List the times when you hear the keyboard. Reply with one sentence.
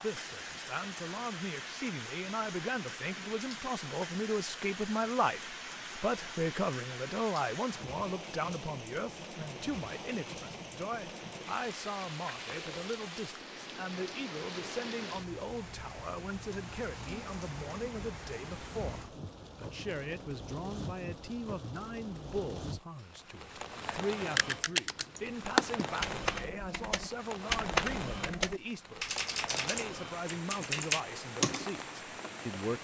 You can hear the keyboard from 23.8 to 31.7 s.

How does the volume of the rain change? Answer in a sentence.
The volume of the rain stays about the same.